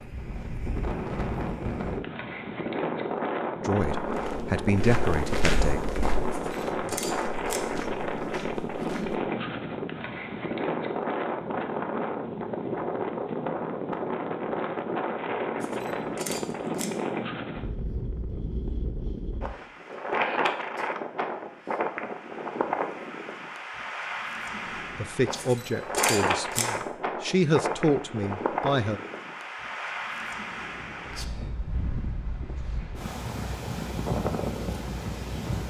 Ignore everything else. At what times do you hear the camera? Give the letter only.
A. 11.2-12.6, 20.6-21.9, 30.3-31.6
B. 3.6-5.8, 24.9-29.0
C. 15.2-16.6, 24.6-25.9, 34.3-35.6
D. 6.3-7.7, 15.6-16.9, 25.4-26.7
D.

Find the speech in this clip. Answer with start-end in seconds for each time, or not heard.
3.6-5.8, 24.9-29.0.